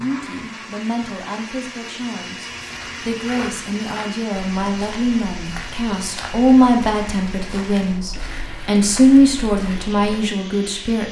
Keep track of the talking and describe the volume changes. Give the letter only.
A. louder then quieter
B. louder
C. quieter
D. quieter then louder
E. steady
B.